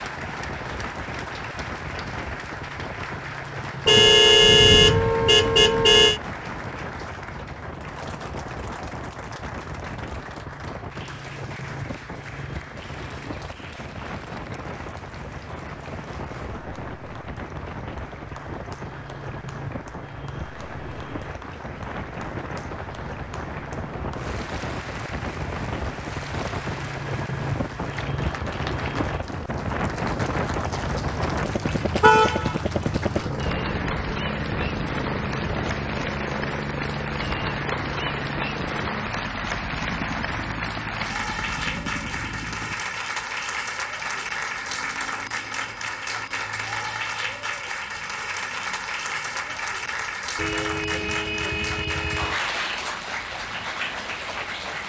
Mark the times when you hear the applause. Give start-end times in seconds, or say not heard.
0.0-54.8.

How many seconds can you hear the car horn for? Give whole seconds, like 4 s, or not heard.
5 s.